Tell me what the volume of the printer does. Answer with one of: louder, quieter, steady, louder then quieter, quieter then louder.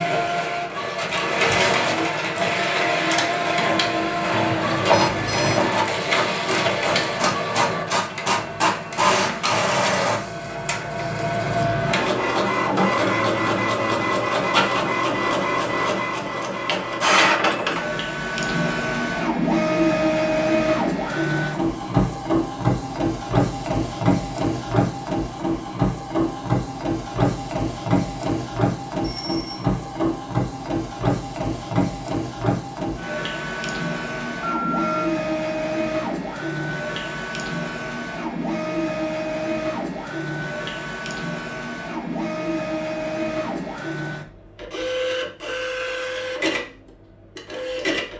quieter.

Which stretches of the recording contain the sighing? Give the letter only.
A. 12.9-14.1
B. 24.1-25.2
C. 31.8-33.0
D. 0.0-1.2
A.